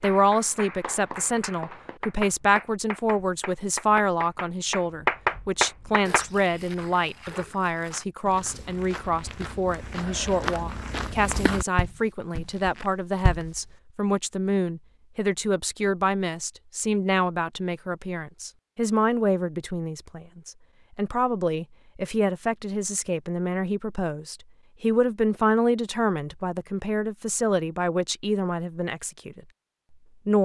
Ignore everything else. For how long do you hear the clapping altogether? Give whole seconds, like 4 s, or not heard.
6 s.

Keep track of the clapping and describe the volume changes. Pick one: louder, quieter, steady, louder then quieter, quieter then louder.
louder.